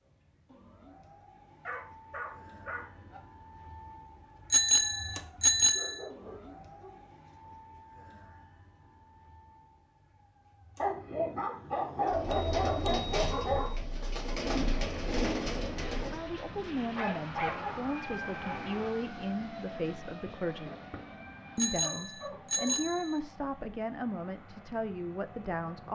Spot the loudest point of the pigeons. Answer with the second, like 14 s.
15 s.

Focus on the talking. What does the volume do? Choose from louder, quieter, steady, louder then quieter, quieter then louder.
steady.